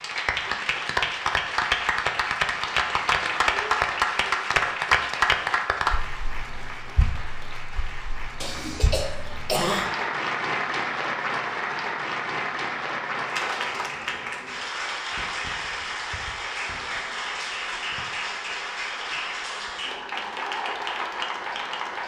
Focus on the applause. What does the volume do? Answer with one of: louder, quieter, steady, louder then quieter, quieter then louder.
quieter.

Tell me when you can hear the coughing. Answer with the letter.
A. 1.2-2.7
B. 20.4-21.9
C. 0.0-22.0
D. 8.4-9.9
D.